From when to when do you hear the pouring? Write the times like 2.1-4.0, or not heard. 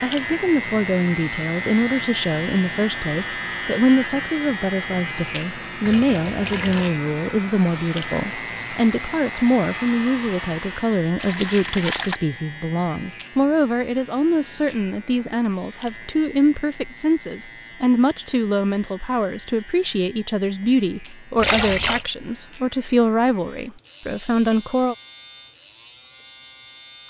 5.8-7.0, 11.2-12.2, 21.4-22.1.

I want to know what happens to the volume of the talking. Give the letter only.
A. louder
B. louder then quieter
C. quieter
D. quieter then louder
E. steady
E.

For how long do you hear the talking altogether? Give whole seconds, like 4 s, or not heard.
25 s.